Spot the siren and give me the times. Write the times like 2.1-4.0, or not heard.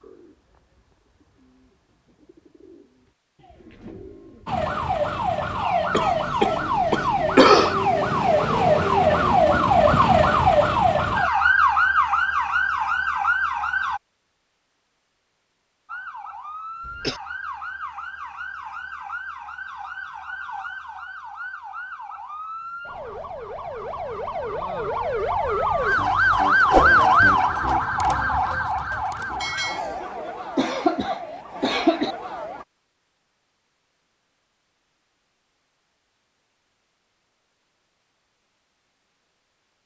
4.5-14.0, 15.8-32.6.